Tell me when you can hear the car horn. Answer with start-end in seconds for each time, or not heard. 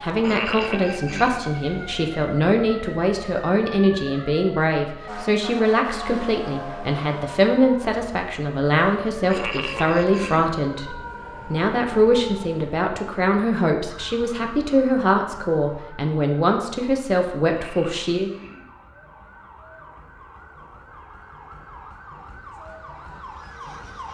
not heard.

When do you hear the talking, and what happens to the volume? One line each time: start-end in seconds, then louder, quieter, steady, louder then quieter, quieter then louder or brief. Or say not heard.
0.0-18.3 steady.